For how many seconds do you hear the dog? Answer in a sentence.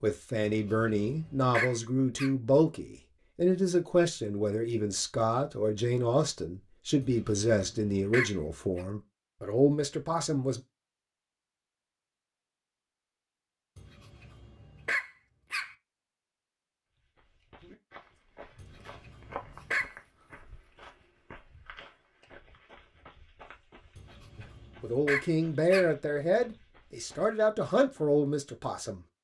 You can hear the dog for 9 seconds altogether.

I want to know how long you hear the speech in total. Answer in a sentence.
The speech can be heard for 15 seconds in total.